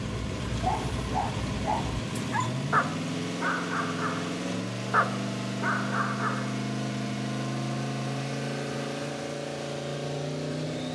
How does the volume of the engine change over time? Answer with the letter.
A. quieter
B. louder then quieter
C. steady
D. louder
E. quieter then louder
C.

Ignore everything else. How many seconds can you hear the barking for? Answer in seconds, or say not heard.
7 s.